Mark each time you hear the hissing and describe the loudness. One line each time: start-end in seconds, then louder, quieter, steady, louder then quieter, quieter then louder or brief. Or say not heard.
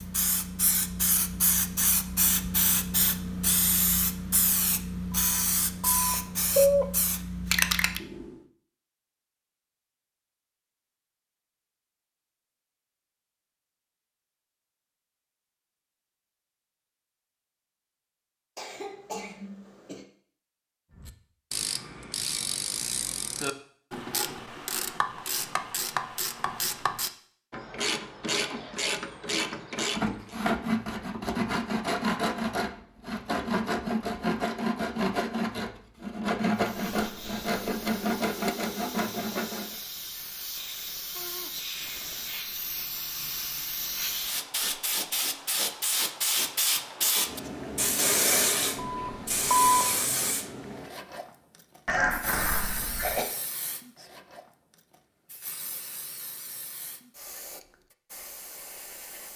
0.0-8.4 steady
36.5-59.3 louder then quieter.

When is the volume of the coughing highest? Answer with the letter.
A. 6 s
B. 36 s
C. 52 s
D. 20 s
C.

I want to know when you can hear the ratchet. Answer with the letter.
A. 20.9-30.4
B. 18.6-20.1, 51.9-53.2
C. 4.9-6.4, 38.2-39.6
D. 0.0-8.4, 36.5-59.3
A.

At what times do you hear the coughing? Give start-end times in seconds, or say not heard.
18.6-20.1, 51.9-53.2.